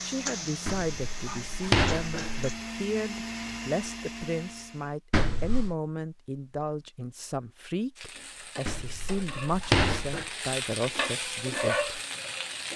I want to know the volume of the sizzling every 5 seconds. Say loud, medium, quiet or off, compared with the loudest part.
medium, medium, loud.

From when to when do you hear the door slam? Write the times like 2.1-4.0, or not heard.
0.7-2.5, 5.1-5.8, 8.7-10.2.